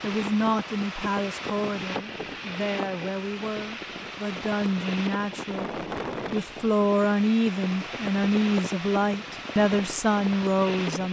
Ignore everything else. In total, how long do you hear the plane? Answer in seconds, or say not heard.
11 s.